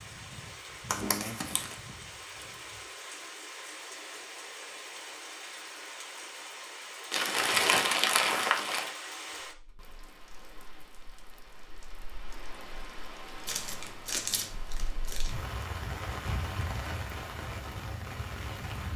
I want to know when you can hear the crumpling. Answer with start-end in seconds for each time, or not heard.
0.9-1.8, 7.1-8.9, 13.4-15.3.